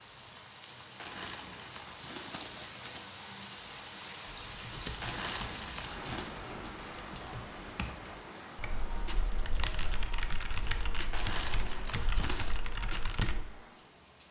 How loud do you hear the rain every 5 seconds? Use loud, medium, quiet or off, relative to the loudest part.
loud, loud, medium.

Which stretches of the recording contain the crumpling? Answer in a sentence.
You can hear the crumpling from 0.9 to 3.0 s, from 5.0 to 6.4 s and from 11.1 to 12.6 s.